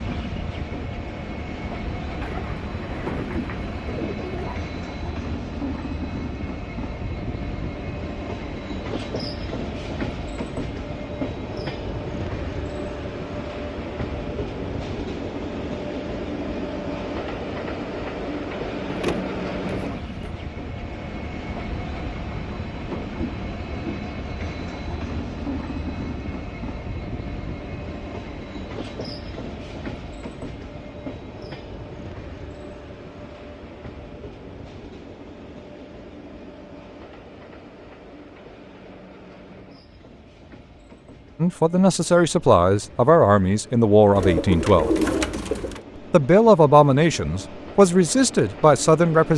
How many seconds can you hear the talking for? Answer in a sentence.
You can hear the talking for 7 seconds altogether.